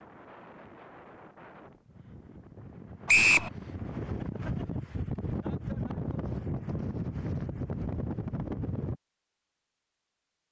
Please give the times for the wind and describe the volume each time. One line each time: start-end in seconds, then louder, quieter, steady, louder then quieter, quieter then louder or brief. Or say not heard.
0.0-9.0 louder.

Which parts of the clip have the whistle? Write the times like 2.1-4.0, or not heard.
3.0-3.5.